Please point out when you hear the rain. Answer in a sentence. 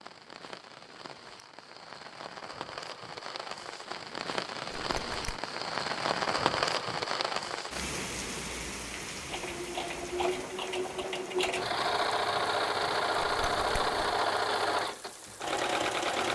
The rain can be heard from 0.0 to 16.2 s.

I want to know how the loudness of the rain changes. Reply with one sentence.
The volume of the rain goes up, then down.